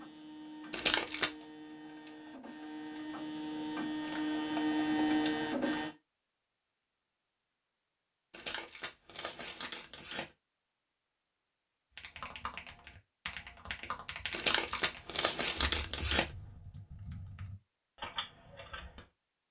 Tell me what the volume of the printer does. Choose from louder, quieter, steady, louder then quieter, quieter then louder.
louder.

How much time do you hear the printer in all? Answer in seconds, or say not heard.
6 s.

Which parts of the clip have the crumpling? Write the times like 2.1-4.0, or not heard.
0.7-1.3, 8.3-10.2, 14.3-16.2.